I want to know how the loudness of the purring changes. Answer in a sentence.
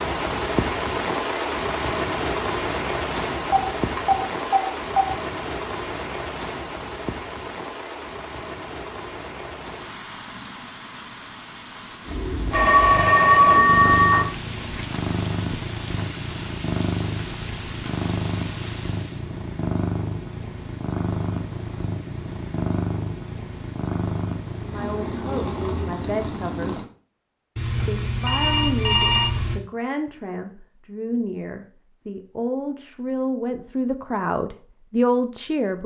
The volume of the purring stays about the same.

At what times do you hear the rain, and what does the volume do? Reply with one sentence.
You can hear the rain from 0.0 to 19.3 s, getting quieter.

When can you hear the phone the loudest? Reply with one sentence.
The volume of the phone peaks at 13 seconds.